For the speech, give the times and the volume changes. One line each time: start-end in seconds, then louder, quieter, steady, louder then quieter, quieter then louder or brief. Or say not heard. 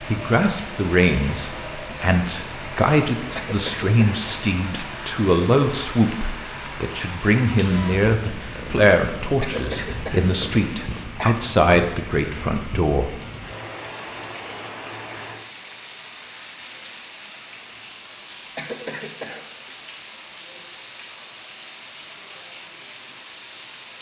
0.0-13.2 steady.